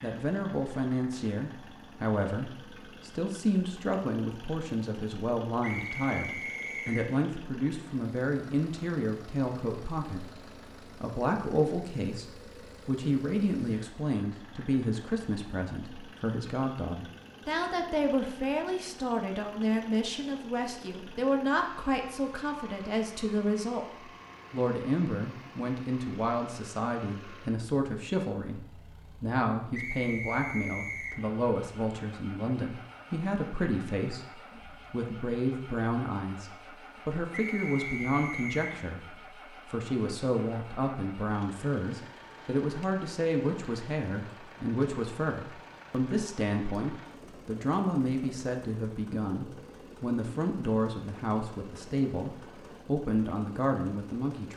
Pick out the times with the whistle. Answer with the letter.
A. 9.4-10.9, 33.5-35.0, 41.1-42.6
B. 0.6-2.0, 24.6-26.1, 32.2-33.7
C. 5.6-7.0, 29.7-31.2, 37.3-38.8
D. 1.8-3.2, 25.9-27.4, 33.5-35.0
C.